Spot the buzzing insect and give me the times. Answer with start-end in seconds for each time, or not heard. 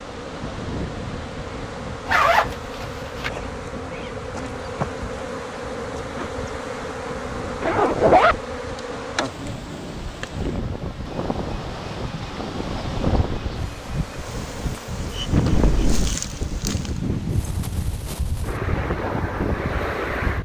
0.0-17.1.